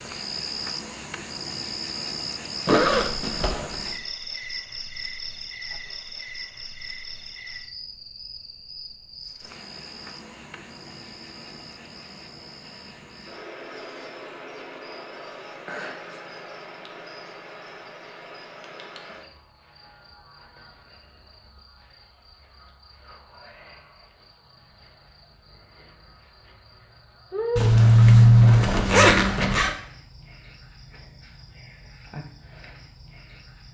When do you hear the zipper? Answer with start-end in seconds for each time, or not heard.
2.6-3.8, 27.6-29.7.